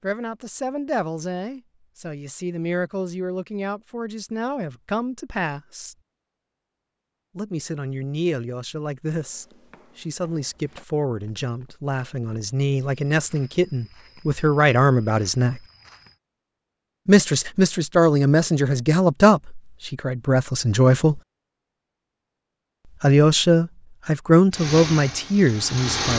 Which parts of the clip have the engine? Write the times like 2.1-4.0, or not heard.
24.5-26.1.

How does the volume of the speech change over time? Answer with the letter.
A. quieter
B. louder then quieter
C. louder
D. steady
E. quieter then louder
C.